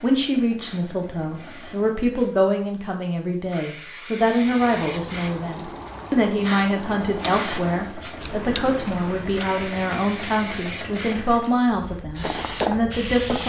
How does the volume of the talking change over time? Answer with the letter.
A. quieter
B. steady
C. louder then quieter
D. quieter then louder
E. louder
B.